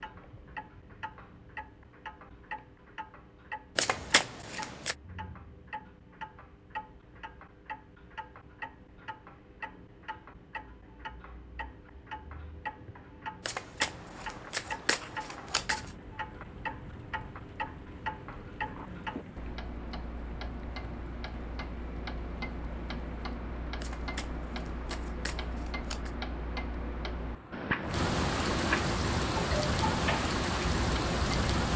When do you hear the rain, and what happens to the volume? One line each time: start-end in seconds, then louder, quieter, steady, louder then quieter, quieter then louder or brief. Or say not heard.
13.9-31.7 louder.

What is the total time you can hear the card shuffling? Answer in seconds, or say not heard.
6 s.